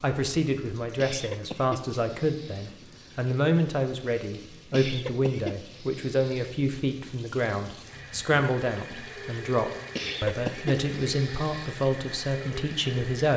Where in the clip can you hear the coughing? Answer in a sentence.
You can hear the coughing from 0.9 to 2.7 s, from 4.7 to 6.5 s and from 9.9 to 11.8 s.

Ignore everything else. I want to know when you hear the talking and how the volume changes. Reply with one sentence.
You can hear the talking from 0.0 to 13.3 s, at a steady volume.